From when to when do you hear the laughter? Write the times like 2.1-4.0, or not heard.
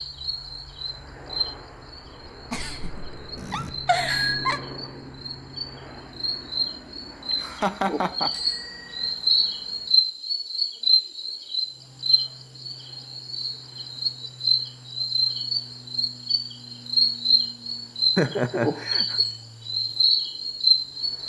2.5-4.6, 7.3-8.3, 18.1-19.2.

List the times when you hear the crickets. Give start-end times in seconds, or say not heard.
0.0-21.2.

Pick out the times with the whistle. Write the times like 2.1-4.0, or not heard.
not heard.